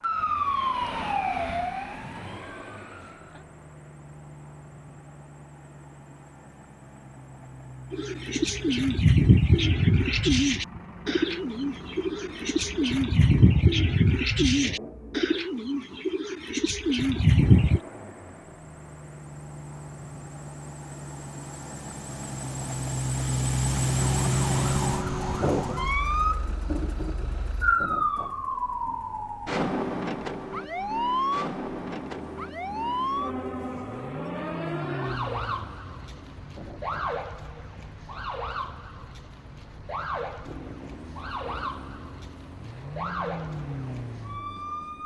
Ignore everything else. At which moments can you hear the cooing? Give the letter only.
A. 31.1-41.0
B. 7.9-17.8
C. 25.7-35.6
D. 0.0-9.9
B.